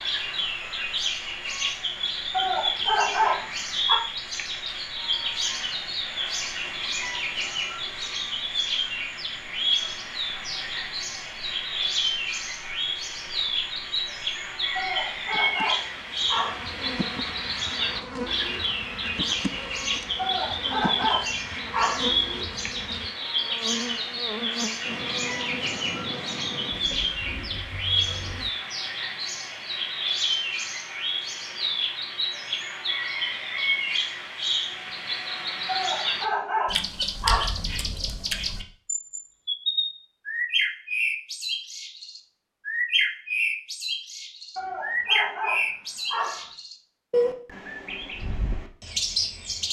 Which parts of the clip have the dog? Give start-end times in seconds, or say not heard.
2.3-4.0, 14.8-16.6, 20.1-22.1, 35.6-37.5, 44.5-46.5.